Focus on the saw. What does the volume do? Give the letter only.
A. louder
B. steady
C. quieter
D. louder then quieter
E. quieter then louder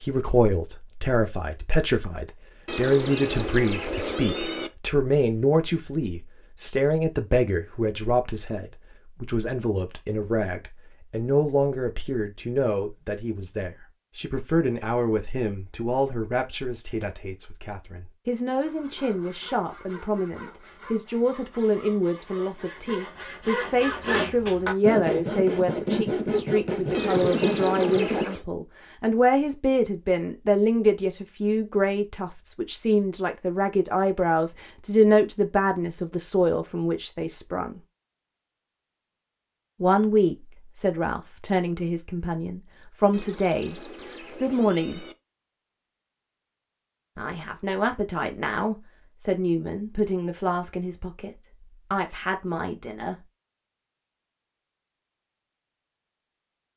A.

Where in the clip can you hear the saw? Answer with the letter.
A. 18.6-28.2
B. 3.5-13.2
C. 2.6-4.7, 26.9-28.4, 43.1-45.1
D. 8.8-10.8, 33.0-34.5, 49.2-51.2
A.